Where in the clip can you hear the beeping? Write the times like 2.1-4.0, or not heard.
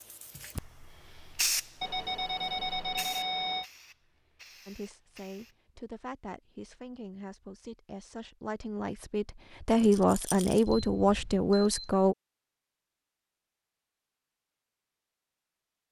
1.8-3.6, 10.7-12.1.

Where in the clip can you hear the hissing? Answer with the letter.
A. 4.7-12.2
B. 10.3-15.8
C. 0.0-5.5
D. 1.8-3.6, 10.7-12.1
C.